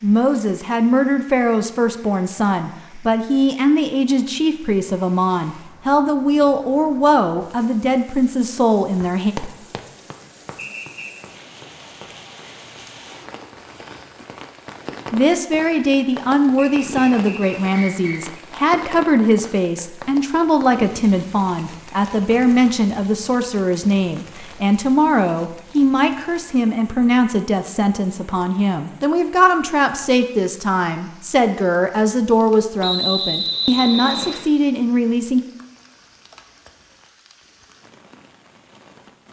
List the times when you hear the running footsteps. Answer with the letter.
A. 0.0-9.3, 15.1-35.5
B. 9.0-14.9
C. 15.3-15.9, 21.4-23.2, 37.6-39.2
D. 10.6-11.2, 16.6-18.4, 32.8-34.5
B.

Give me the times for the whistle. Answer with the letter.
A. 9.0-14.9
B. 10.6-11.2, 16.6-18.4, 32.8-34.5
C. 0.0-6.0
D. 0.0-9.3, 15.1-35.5
B.